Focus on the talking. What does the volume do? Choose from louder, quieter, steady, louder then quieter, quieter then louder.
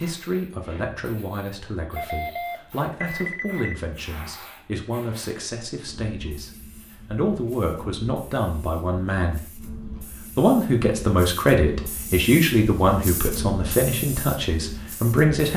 louder.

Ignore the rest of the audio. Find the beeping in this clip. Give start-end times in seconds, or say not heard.
1.9-3.8.